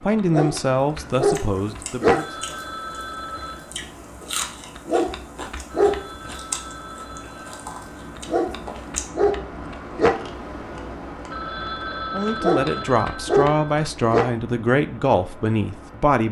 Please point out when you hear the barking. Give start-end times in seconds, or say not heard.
0.3-2.2, 4.8-6.3, 8.2-10.2, 12.4-14.3.